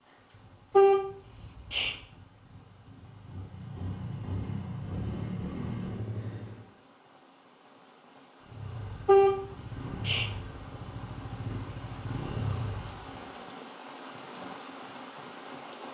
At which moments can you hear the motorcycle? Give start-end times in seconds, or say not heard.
0.0-6.7, 8.4-13.3.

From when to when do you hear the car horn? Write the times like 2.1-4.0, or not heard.
0.8-1.9, 9.1-10.3.